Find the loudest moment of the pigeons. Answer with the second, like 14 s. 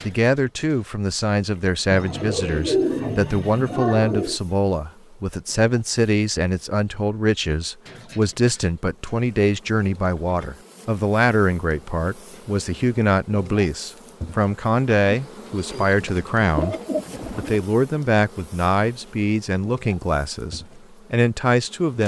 3 s.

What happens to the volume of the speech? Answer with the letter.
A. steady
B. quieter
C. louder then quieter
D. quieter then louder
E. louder
A.